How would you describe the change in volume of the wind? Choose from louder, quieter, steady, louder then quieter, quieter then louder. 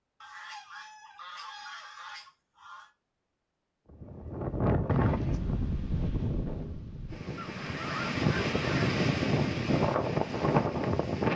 quieter then louder.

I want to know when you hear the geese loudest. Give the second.
8 s.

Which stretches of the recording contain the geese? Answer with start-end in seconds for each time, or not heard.
0.2-2.9, 7.3-8.9.